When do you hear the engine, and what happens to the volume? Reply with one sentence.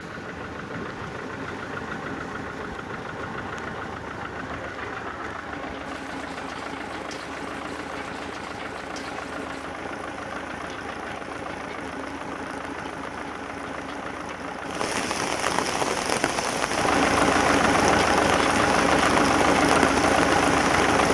You can hear the engine from 0.0 to 21.0 s, getting louder.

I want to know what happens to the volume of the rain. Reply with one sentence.
The loudness of the rain goes up.